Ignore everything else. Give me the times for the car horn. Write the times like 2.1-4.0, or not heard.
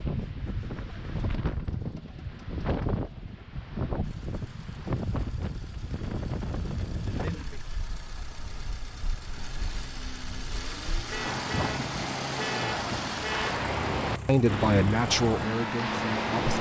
11.1-13.6.